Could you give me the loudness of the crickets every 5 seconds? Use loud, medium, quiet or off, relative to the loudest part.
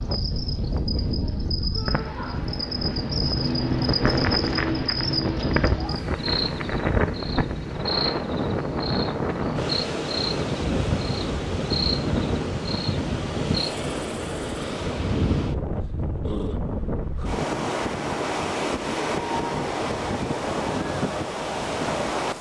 loud, loud, loud, off, off.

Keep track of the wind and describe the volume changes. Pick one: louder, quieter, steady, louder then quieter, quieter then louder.
steady.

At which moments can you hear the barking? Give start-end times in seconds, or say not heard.
not heard.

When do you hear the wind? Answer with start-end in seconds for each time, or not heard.
0.0-22.3.